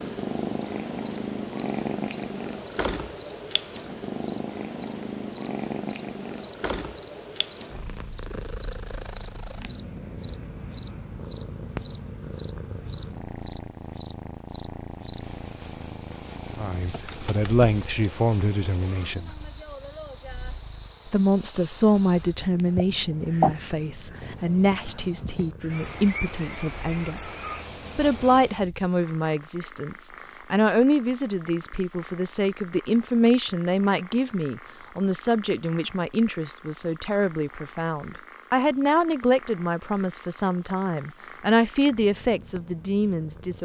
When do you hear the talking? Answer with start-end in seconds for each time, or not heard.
16.6-19.4, 21.1-27.2, 27.9-43.6.